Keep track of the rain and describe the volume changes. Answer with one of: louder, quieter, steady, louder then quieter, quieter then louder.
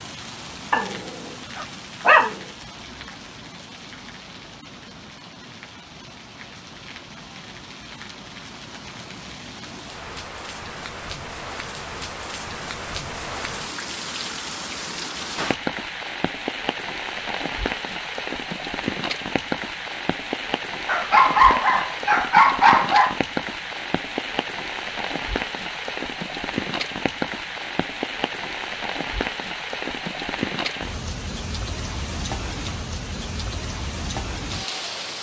louder.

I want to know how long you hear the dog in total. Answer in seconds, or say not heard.
4 s.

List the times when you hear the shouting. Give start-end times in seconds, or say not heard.
not heard.